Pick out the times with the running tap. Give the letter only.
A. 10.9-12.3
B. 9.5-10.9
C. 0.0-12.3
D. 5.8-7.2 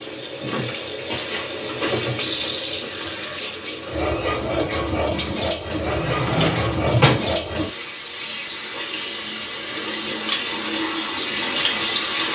C.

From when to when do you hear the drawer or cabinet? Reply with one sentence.
The drawer or cabinet can be heard from 5.8 to 7.2 s.